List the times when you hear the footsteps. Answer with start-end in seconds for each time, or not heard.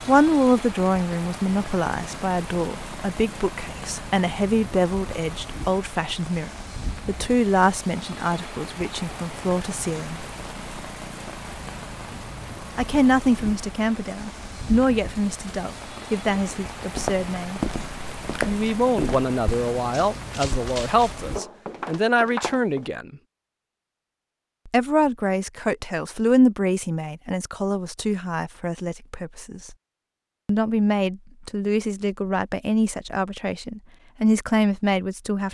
16.2-22.9.